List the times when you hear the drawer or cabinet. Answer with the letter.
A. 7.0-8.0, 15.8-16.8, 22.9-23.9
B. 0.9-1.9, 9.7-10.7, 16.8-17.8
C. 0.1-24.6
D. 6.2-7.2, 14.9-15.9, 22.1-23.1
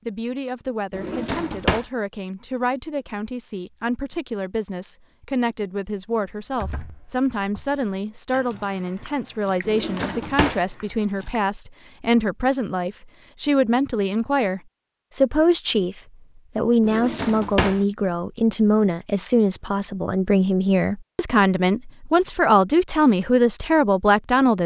B.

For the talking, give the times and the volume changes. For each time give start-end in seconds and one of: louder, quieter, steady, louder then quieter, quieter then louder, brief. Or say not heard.
0.1-24.6 louder.